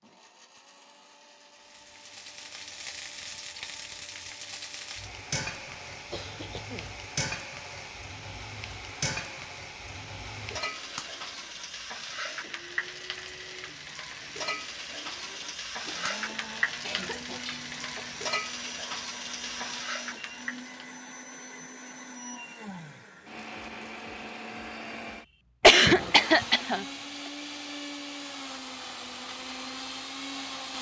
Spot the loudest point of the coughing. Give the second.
26 s.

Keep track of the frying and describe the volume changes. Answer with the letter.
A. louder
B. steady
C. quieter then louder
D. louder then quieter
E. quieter
B.